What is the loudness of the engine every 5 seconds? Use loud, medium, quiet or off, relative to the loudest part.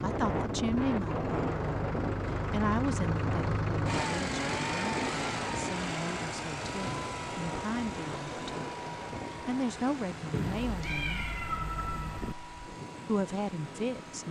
loud, loud, medium.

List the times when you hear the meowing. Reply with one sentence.
You can hear the meowing from 10.3 to 12.3 s.